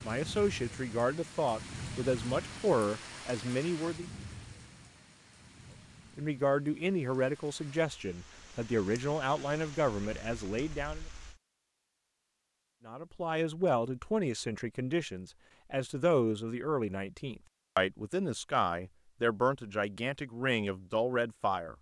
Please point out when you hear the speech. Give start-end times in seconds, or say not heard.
0.0-4.1, 6.2-11.1, 12.8-21.7.